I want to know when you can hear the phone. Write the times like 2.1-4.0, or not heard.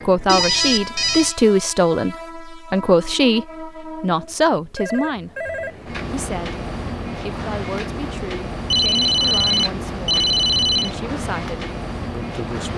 0.2-1.4, 4.8-6.0, 8.7-10.9.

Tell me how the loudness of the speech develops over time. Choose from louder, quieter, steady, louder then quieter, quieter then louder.
quieter.